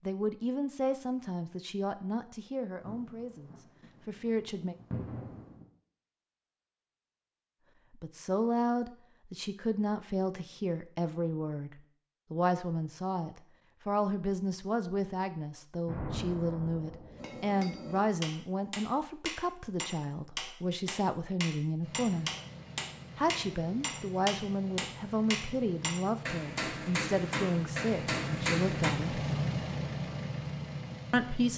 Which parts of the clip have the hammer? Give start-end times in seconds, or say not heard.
17.1-28.9.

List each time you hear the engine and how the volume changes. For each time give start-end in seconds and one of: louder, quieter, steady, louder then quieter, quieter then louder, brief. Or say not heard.
21.8-31.5 louder.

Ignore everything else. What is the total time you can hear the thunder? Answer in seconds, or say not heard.
4 s.